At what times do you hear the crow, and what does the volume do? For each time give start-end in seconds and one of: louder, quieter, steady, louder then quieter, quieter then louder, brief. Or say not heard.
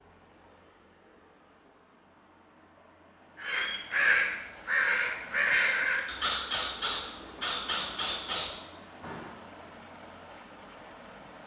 3.4-9.3 quieter.